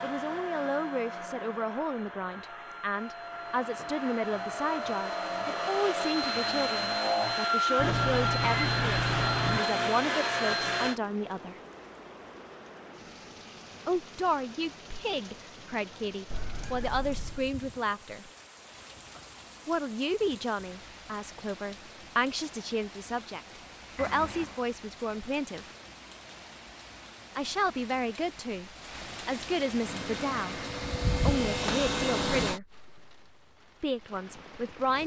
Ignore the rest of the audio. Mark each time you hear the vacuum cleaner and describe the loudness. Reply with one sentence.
The vacuum cleaner can be heard from 0.0 to 11.0 s, getting louder; and briefly from 29.8 to 32.6 s.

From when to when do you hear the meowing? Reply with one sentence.
The meowing can be heard from 7.8 to 9.6 s, from 16.3 to 17.5 s and from 23.9 to 24.6 s.